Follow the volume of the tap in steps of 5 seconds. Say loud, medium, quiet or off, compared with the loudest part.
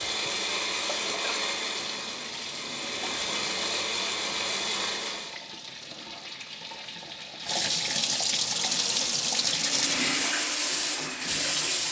quiet, loud, loud.